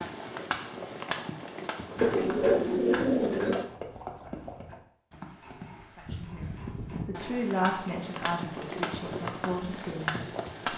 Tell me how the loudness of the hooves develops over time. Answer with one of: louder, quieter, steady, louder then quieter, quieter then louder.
quieter then louder.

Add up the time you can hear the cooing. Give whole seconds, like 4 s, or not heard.
2 s.